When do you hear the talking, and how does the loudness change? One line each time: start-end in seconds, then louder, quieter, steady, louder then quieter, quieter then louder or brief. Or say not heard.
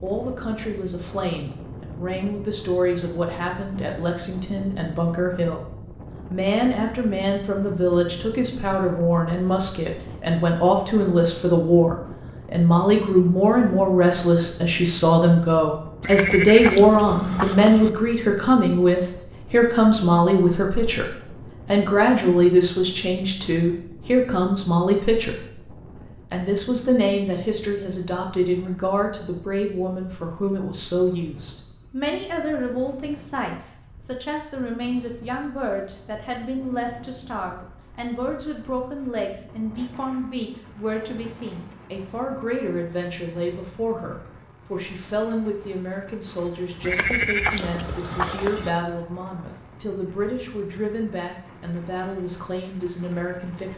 0.0-53.7 louder then quieter.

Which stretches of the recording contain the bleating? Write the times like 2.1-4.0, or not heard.
16.0-17.9, 46.8-48.7.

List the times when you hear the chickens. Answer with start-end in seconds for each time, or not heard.
not heard.